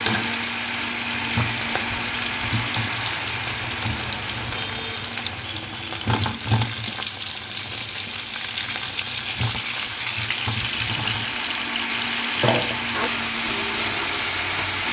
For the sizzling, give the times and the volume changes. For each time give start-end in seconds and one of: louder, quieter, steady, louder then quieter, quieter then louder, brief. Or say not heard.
0.0-14.8 steady.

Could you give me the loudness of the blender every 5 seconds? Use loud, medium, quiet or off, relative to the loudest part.
loud, medium, loud.